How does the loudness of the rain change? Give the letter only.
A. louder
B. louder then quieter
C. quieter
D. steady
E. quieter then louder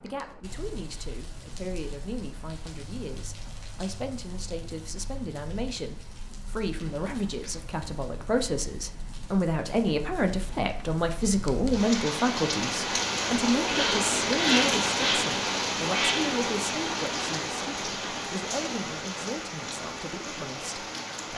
B.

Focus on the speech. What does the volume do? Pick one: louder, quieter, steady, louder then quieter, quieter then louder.
louder then quieter.